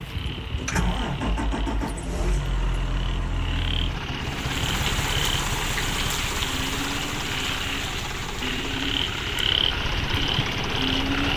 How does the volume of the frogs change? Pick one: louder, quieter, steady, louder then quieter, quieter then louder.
louder.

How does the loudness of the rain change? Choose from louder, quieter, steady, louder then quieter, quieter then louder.
quieter.